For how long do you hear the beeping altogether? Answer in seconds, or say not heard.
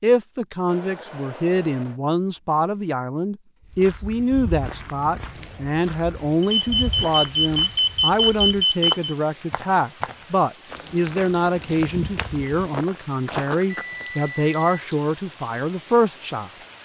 5 s.